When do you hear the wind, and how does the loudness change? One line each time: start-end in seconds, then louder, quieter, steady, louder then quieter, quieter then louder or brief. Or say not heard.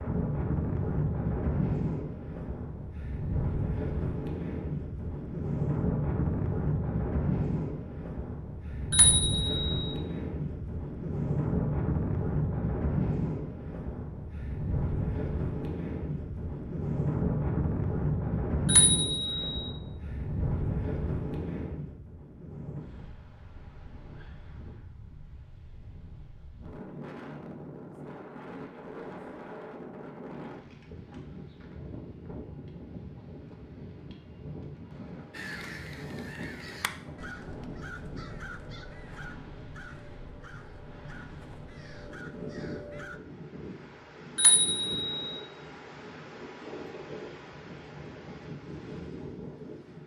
0.0-50.0 quieter.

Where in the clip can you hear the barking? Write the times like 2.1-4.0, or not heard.
not heard.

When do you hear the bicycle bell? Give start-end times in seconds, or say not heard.
8.9-9.9, 18.6-19.7, 44.4-45.4.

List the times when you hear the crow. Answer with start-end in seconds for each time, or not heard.
35.3-43.2.